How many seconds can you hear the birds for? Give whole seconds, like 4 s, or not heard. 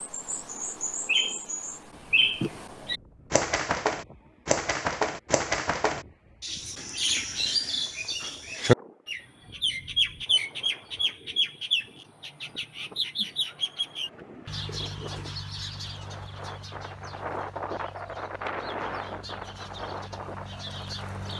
21 s.